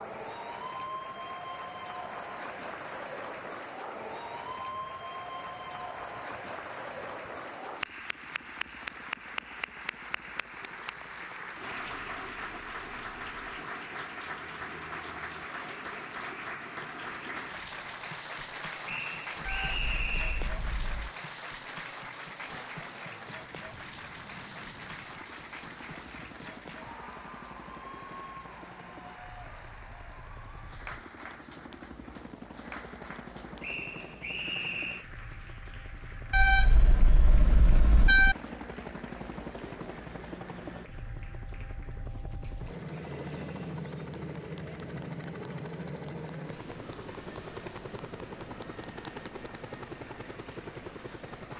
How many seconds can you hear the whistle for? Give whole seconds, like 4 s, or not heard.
3 s.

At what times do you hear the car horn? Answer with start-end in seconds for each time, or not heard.
19.4-21.1, 36.3-38.4.